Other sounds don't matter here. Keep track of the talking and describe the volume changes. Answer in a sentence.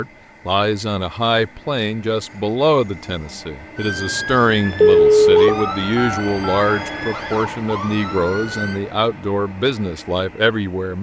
The volume of the talking stays about the same.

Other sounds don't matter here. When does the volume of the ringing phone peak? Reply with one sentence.
The volume of the ringing phone peaks at 5 seconds.